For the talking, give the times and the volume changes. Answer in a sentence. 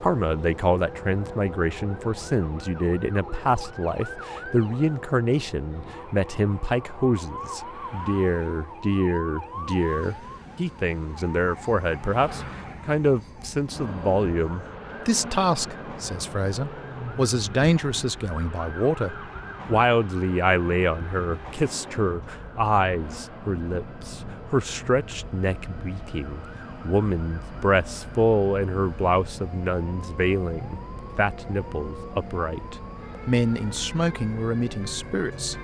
The talking can be heard from 0.0 to 35.5 s, at a steady volume.